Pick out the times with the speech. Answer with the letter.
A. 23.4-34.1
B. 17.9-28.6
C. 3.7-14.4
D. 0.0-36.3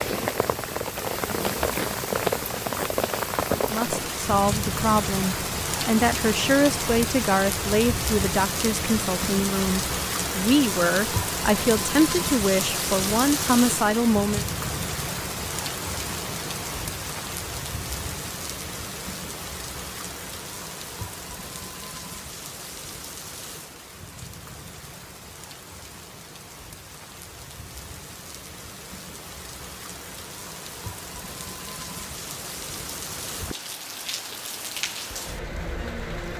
C.